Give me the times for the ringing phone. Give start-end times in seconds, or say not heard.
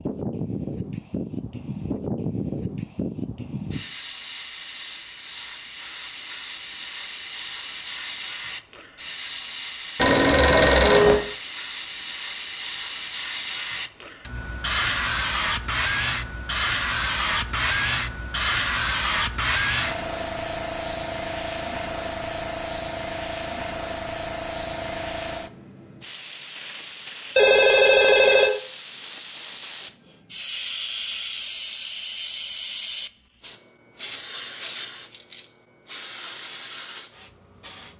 9.9-11.2, 27.4-28.5.